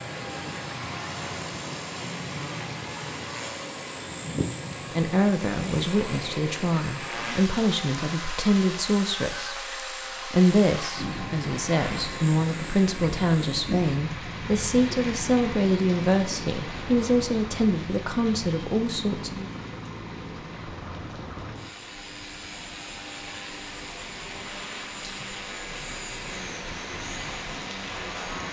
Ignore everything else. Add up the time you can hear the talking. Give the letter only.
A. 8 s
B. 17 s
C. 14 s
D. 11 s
C.